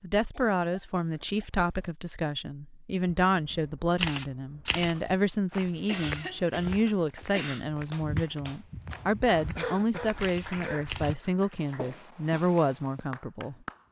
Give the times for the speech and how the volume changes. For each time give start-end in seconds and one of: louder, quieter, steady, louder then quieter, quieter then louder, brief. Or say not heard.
0.0-13.8 steady.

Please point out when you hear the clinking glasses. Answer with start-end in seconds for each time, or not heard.
not heard.